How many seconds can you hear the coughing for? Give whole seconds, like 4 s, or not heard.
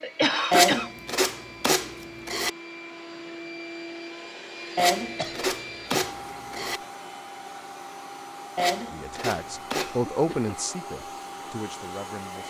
3 s.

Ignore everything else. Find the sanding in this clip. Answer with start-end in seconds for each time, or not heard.
0.5-2.5, 4.8-6.8, 8.6-9.9.